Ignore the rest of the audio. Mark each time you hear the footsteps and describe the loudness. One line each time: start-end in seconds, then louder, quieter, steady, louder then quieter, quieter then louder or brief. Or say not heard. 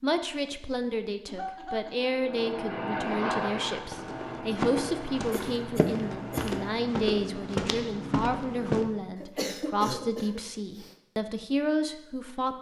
3.7-8.8 steady.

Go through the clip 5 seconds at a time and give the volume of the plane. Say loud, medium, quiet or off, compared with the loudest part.
loud, medium, off.